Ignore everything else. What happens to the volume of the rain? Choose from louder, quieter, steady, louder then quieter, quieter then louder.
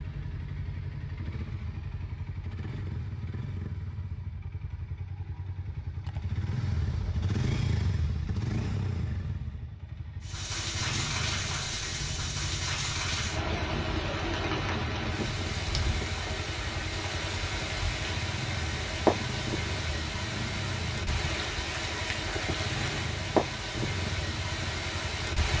steady.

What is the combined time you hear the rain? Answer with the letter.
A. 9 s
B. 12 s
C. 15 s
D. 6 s
C.